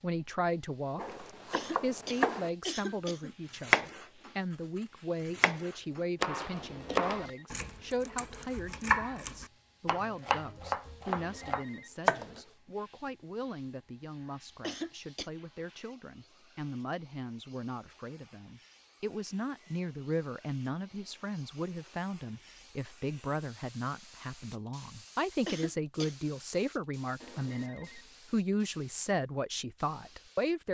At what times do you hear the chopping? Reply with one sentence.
The chopping can be heard from 0.9 to 2.5 s, from 3.5 to 4.3 s and from 5.2 to 12.4 s.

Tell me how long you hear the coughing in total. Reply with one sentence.
You can hear the coughing for 3 seconds altogether.